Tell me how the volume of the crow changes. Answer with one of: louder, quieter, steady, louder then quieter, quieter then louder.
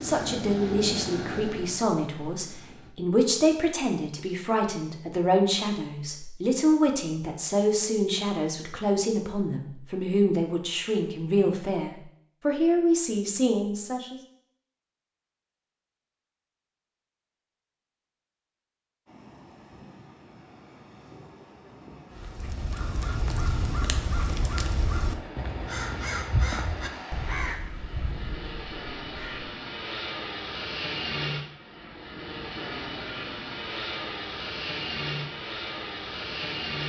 quieter.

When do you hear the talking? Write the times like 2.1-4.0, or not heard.
0.0-14.2.